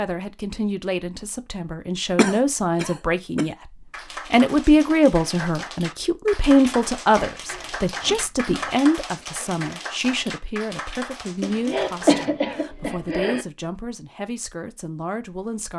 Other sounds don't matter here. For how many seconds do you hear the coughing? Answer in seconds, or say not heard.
5 s.